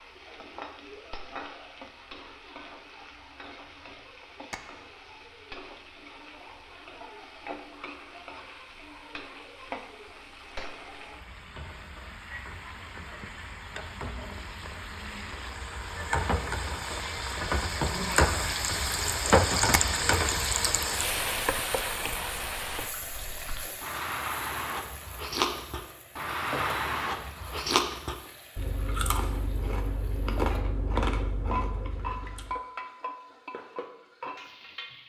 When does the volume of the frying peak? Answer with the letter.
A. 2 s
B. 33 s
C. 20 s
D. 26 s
C.